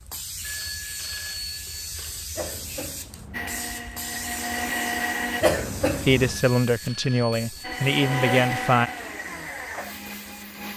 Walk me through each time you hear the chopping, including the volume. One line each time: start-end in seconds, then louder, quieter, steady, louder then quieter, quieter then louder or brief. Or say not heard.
not heard.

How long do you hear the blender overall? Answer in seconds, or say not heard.
5 s.